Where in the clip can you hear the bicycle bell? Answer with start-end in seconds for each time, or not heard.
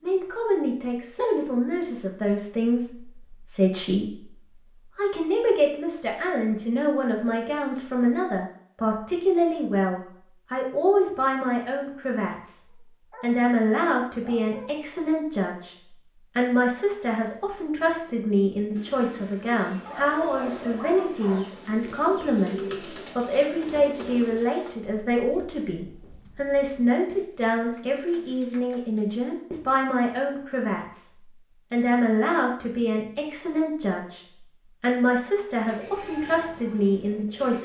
not heard.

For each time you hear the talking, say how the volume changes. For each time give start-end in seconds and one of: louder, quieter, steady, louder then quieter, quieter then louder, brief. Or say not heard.
0.0-37.5 steady.